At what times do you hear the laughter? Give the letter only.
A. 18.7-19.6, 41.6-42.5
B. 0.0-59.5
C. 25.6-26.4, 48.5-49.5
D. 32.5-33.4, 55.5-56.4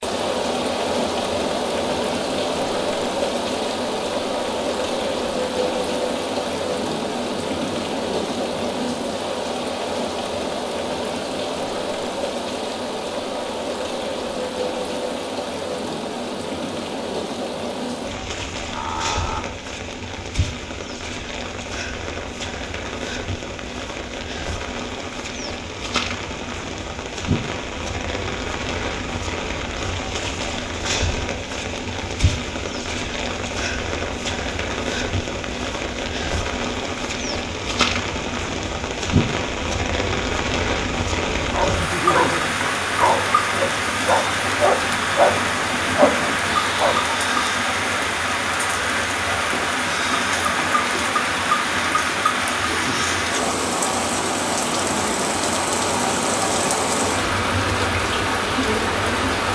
A.